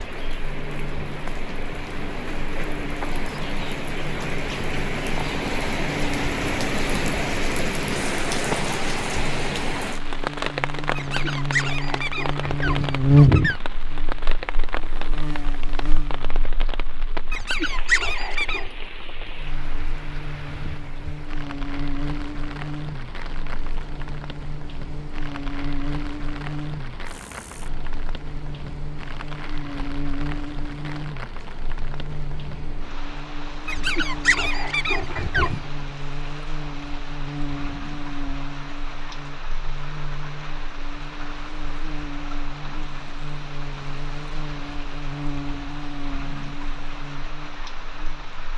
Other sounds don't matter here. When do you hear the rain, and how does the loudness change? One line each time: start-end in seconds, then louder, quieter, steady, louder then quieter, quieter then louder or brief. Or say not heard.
0.0-48.5 quieter.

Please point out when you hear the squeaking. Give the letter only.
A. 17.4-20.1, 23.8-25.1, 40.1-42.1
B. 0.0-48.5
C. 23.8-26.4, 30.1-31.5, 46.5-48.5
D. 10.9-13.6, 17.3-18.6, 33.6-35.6
D.